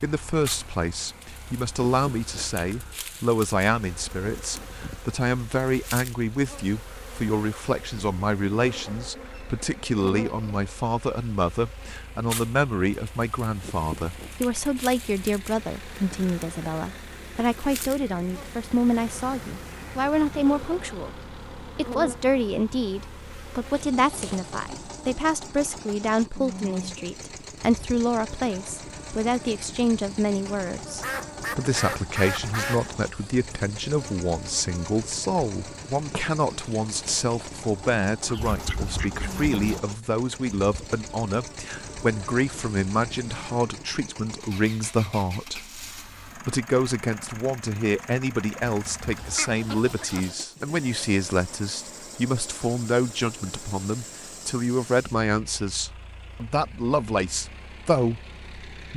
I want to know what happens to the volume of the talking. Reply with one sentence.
The volume of the talking stays about the same.